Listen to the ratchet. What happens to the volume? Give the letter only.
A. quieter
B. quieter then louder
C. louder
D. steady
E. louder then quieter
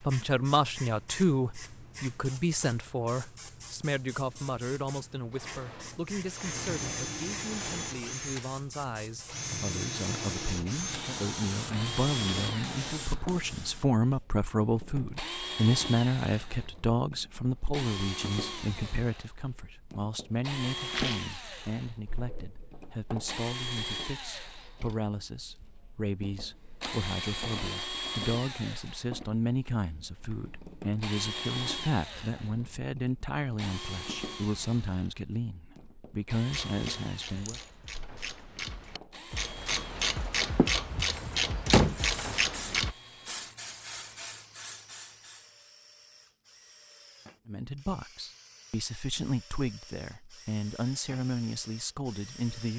C.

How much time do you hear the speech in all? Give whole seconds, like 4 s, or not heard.
43 s.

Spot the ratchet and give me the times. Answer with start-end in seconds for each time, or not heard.
36.5-43.0.